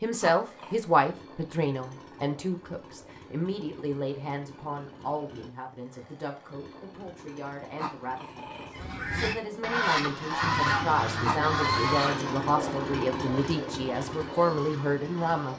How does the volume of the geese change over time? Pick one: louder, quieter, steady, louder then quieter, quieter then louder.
quieter.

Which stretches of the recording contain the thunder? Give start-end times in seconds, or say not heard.
not heard.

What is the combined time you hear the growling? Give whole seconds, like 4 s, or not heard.
3 s.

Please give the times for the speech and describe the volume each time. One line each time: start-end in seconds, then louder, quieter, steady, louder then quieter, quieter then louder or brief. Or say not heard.
0.0-15.5 quieter then louder.